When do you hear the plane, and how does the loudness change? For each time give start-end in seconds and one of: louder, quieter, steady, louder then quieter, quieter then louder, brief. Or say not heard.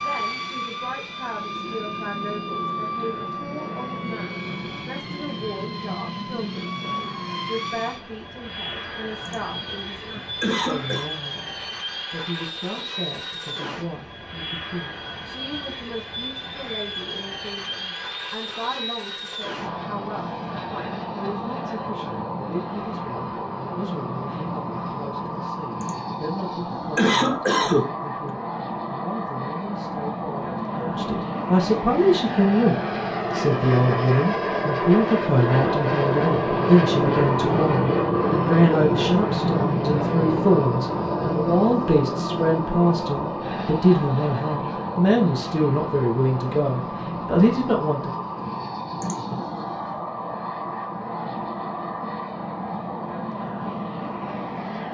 0.0-54.8 louder then quieter.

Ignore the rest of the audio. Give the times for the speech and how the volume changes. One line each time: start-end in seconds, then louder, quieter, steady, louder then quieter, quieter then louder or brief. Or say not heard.
0.0-48.2 louder.